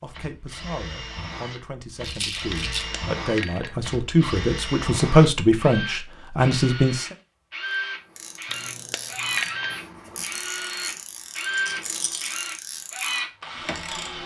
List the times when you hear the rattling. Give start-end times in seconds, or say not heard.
2.0-2.9, 11.5-12.3.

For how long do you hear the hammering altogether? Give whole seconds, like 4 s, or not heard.
3 s.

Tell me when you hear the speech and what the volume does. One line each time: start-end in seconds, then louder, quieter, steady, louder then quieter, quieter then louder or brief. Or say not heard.
0.0-7.2 louder.